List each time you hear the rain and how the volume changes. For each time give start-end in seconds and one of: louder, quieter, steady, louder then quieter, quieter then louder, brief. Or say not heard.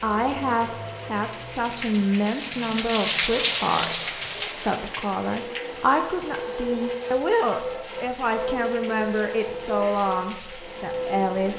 0.0-11.5 louder then quieter.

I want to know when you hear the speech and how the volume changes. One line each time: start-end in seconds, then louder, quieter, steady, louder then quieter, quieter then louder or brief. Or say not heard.
0.0-11.5 steady.